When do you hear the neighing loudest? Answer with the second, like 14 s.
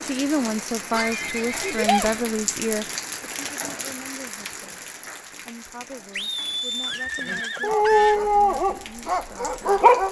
2 s.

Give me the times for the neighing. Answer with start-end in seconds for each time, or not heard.
0.9-2.2, 6.1-8.2.